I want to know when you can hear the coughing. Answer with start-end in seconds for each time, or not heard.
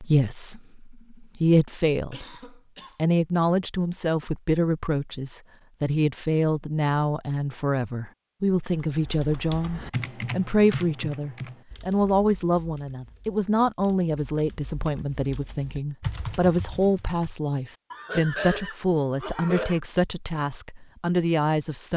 2.1-3.0, 17.9-19.8.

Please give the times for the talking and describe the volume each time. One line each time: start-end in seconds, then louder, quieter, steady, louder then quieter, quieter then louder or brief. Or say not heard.
0.0-2.2 brief
3.0-21.9 steady.